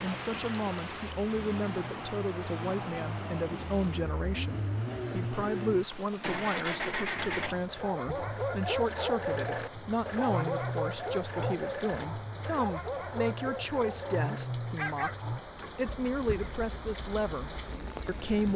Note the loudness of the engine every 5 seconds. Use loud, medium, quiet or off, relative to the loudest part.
loud, loud, loud, medium.